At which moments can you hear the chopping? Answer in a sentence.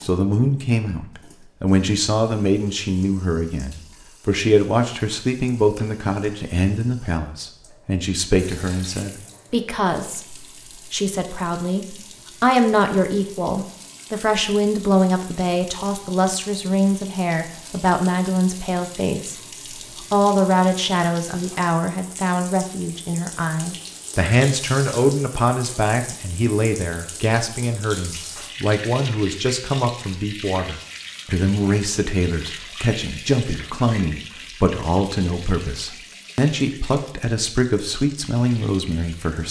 The chopping can't be heard in this clip.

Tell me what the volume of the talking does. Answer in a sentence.
The loudness of the talking stays about the same.